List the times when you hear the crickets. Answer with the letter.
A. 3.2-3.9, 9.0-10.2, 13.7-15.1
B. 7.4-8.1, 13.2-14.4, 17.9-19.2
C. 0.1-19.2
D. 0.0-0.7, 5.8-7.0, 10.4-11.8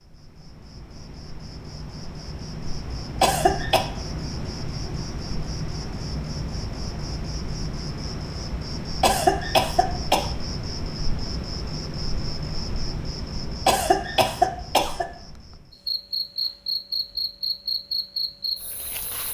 C.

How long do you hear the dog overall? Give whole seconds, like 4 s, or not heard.
not heard.